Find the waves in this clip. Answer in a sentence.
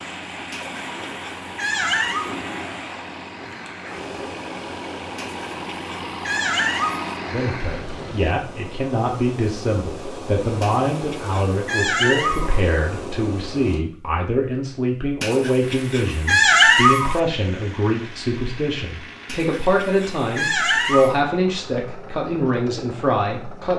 The waves can be heard from 0.0 to 13.8 s.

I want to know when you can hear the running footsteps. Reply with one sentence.
You can't hear the running footsteps here.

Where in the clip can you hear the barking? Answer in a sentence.
You can hear the barking from 0.5 to 2.3 s, from 5.2 to 7.2 s, from 10.6 to 12.6 s, from 15.2 to 17.2 s and from 19.2 to 21.2 s.